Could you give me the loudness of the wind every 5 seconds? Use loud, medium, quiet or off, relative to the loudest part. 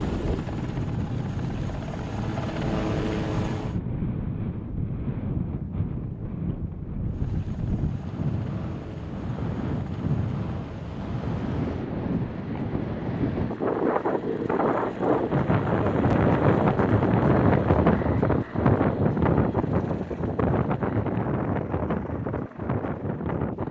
medium, medium, medium, loud, medium.